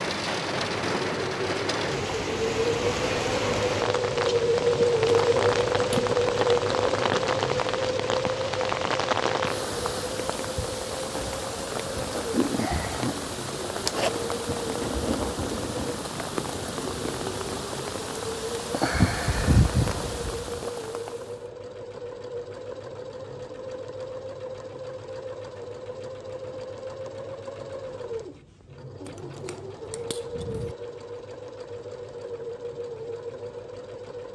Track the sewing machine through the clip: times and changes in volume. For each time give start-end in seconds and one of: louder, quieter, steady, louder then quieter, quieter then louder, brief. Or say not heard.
0.2-34.3 quieter.